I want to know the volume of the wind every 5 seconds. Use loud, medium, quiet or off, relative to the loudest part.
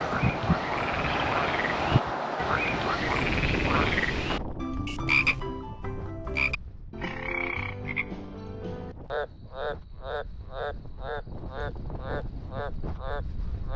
loud, quiet, quiet.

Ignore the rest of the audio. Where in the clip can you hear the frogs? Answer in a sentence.
The frogs can be heard from 0.0 to 13.7 s.